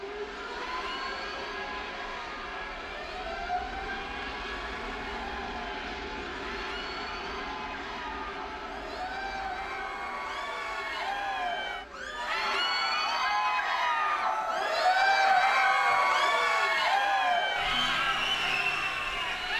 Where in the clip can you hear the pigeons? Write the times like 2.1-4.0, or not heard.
not heard.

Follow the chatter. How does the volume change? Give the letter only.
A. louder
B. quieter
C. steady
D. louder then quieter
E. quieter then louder
A.